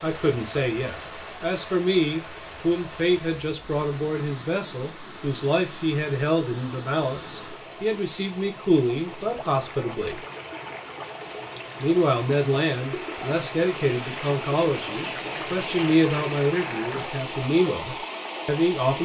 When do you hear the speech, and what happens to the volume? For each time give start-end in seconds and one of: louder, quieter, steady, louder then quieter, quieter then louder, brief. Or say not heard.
0.0-10.2 steady
11.8-18.9 steady.